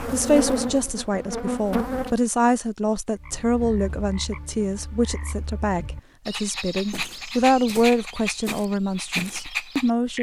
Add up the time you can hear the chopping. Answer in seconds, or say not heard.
not heard.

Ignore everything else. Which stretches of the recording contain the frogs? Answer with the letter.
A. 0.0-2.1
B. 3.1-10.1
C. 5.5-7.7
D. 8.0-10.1
B.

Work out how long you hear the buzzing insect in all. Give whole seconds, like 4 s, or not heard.
2 s.